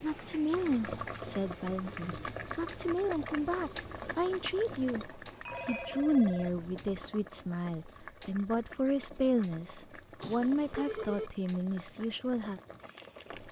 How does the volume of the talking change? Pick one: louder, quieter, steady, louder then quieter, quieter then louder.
steady.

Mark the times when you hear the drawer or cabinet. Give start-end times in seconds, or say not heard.
not heard.